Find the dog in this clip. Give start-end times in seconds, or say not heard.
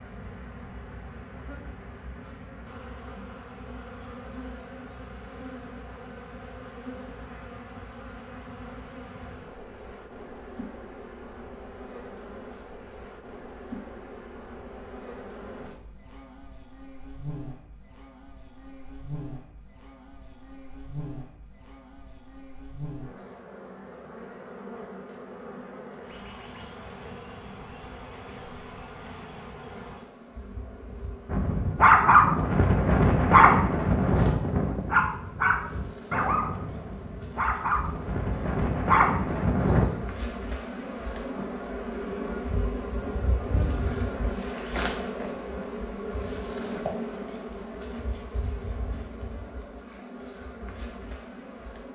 31.3-39.9.